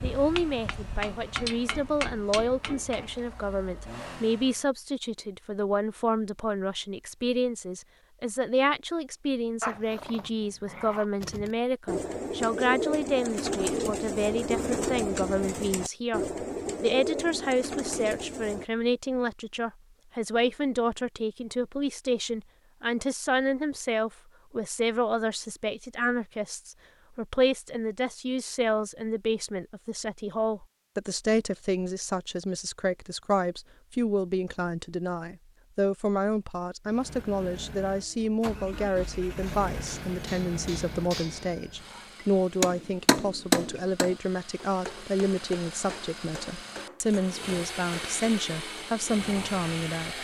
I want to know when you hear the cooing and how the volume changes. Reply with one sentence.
The cooing can be heard from 11.2 to 18.6 s, at a steady volume.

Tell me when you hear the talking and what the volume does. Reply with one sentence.
The talking can be heard from 0.0 to 50.1 s, at a steady volume.